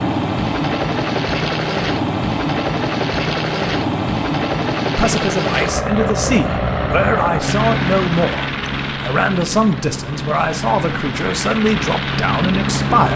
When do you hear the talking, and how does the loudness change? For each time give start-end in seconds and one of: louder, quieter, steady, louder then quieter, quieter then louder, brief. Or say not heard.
5.0-13.1 steady.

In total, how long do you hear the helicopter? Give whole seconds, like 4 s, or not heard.
13 s.